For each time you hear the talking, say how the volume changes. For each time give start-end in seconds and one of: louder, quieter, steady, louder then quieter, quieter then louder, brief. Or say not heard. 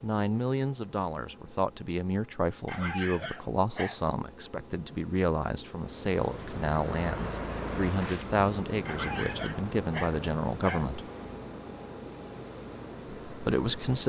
0.0-11.1 steady
13.2-14.0 brief.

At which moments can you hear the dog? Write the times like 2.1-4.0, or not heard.
2.6-4.1, 8.8-10.9.